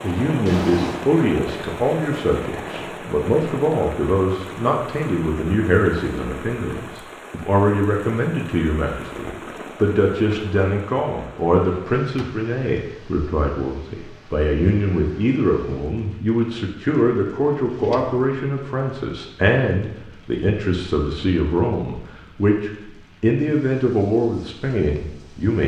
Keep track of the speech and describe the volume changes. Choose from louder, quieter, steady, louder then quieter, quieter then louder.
steady.